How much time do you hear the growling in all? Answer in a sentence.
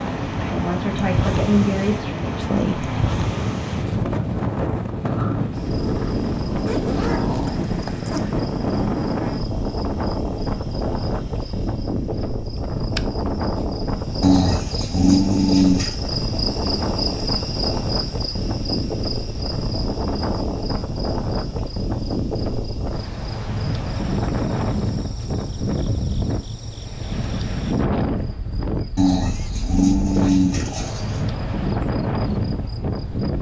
The growling can be heard for 7 seconds in total.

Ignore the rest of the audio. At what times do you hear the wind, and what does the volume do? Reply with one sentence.
You can hear the wind from 0.0 to 33.3 s, at a steady volume.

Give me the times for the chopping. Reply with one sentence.
The chopping can't be heard in this clip.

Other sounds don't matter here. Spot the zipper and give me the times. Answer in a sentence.
You can hear the zipper from 6.7 to 8.3 s.